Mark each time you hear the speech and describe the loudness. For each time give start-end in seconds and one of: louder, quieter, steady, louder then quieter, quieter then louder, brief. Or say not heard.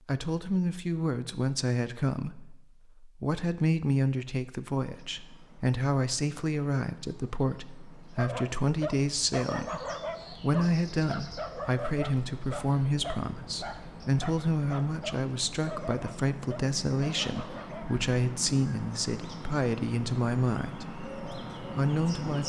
0.1-22.4 steady.